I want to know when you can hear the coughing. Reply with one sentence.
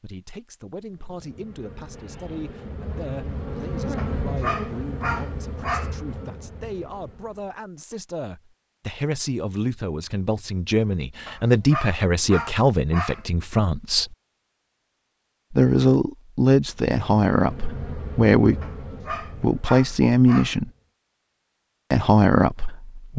The coughing can't be heard in this clip.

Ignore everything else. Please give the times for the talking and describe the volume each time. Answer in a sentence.
You can hear the talking from 0.0 to 14.2 s, getting louder; from 15.5 to 20.7 s, getting quieter then louder; and briefly from 21.9 to 23.1 s.